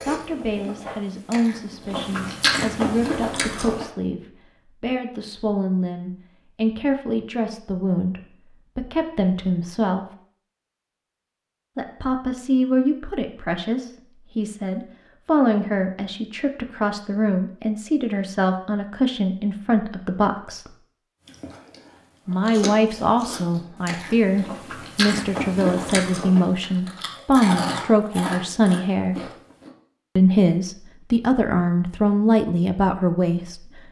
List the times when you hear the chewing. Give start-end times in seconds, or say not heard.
0.0-3.9, 21.2-29.7.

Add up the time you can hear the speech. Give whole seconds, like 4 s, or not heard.
30 s.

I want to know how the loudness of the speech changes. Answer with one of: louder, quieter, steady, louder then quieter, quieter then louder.
louder.